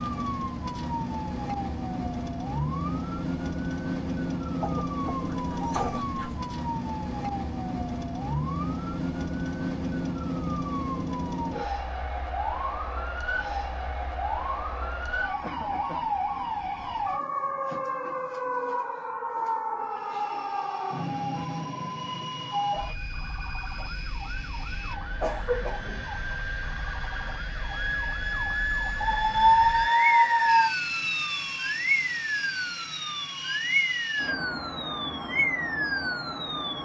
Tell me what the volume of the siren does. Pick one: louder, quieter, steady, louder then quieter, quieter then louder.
quieter then louder.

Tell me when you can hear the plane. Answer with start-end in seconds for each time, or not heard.
19.8-36.8.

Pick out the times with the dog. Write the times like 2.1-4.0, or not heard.
5.2-6.4, 29.0-30.7.